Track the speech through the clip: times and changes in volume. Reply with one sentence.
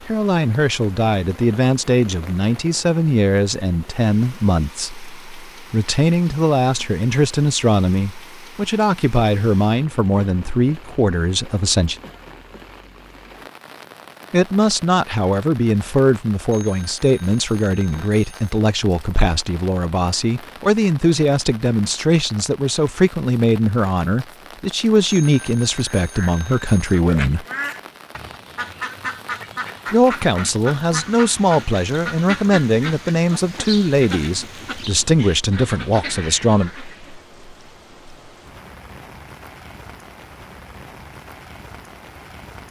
The speech can be heard from 0.1 to 11.9 s, at a steady volume; from 14.3 to 27.4 s, at a steady volume; and from 29.9 to 36.7 s, at a steady volume.